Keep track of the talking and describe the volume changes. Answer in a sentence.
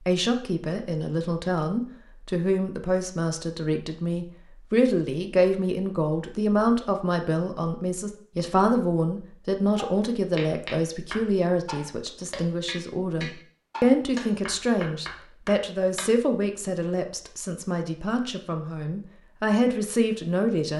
The volume of the talking stays about the same.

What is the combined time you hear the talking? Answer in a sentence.
You can hear the talking for 21 seconds altogether.